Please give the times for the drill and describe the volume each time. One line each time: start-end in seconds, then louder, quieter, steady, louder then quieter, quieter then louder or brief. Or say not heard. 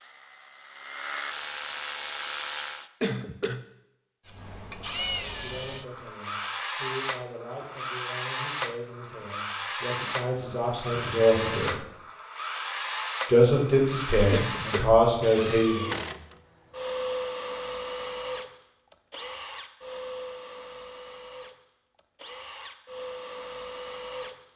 0.0-2.9 brief
4.2-24.4 quieter.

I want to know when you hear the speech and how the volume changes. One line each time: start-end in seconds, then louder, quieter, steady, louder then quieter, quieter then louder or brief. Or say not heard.
5.2-11.8 louder
13.2-15.9 brief.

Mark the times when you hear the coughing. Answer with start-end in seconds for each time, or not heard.
3.0-3.6, 14.3-15.0.